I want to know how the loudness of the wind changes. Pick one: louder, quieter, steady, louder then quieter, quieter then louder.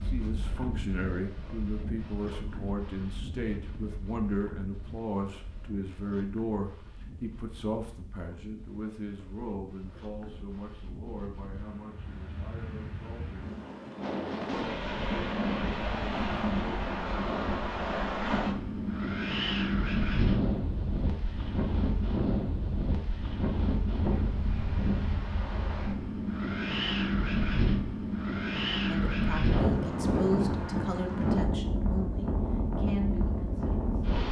louder.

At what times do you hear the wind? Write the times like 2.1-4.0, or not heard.
0.0-34.2.